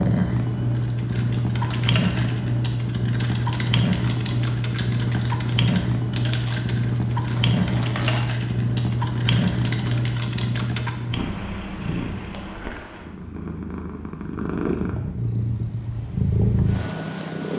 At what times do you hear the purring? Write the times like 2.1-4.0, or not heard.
0.0-17.5.